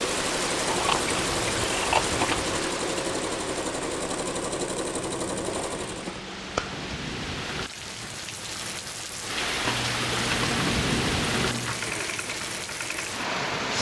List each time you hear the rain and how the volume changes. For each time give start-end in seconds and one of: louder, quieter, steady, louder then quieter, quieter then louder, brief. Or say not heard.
0.0-13.7 quieter then louder.